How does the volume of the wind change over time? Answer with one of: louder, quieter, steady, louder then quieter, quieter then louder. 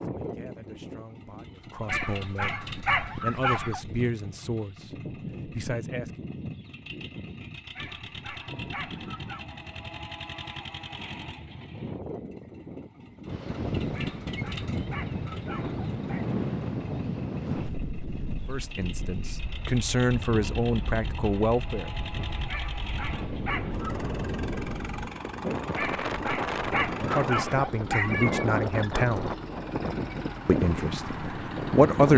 quieter then louder.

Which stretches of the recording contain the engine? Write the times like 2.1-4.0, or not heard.
0.0-32.1.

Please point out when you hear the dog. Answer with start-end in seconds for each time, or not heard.
1.9-3.8, 7.8-9.4, 13.9-16.2, 22.4-24.1, 25.8-28.5.